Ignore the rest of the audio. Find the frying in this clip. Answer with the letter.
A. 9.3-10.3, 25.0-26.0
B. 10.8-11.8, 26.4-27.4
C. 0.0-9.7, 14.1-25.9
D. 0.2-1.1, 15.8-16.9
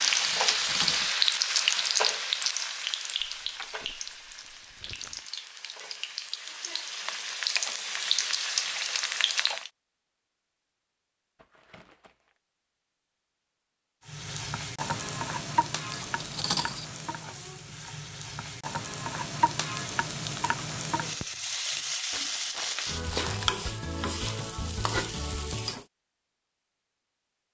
C.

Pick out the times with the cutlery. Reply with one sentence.
The cutlery can be heard from 0.2 to 1.1 s and from 15.8 to 16.9 s.